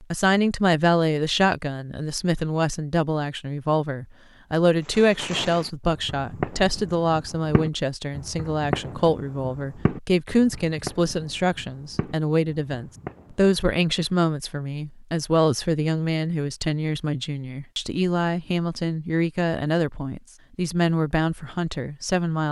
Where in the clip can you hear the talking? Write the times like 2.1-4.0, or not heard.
0.0-22.4.